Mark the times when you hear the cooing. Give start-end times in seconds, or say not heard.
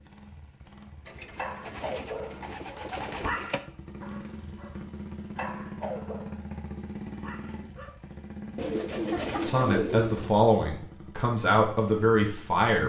1.1-3.6, 8.6-10.3.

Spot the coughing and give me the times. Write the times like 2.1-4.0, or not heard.
not heard.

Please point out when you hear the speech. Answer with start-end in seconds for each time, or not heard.
9.4-12.8.